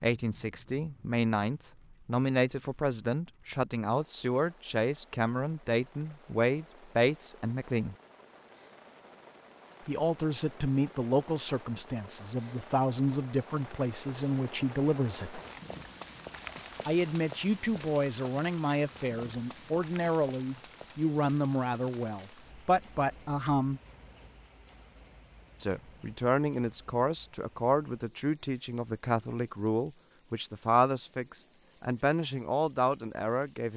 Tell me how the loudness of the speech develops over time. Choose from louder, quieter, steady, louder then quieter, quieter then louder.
steady.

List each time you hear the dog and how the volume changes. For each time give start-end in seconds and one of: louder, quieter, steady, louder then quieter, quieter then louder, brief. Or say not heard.
not heard.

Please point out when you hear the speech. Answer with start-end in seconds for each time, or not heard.
0.0-8.0, 9.8-15.4, 16.9-23.8, 25.6-33.7.